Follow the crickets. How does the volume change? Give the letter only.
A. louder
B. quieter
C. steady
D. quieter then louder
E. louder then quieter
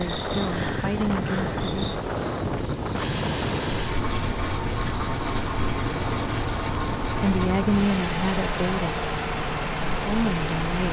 C.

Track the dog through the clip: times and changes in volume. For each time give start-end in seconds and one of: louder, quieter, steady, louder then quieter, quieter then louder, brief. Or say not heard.
not heard.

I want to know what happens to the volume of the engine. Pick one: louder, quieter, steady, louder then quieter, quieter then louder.
louder.